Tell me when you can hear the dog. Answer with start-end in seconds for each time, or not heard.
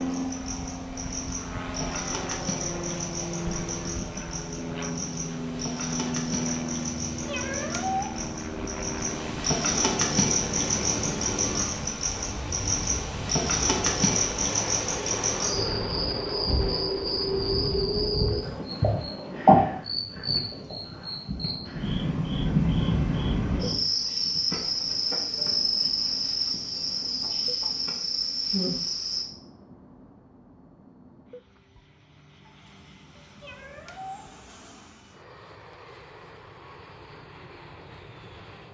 not heard.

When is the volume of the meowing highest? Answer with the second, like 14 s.
8 s.